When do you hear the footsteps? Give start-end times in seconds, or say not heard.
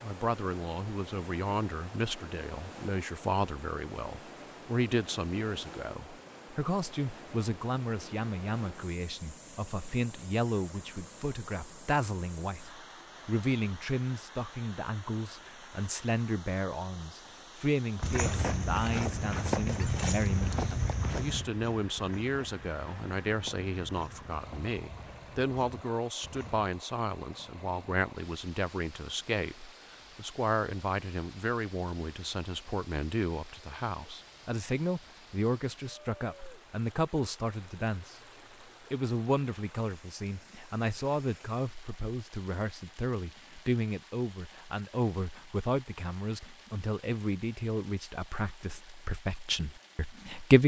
18.0-26.7.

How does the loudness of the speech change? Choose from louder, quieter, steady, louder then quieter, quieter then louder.
steady.